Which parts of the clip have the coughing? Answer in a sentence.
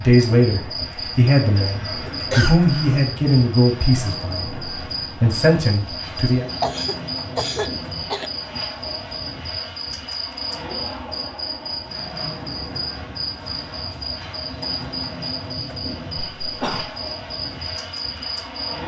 You can hear the coughing from 2.0 to 3.1 s, from 6.6 to 8.3 s and from 16.4 to 16.9 s.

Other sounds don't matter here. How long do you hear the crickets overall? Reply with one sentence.
You can hear the crickets for 19 seconds altogether.